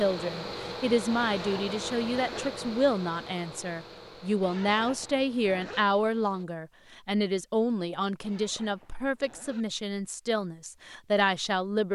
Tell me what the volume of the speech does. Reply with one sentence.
The volume of the speech stays about the same.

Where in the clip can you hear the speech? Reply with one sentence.
The speech can be heard from 0.0 to 11.9 s.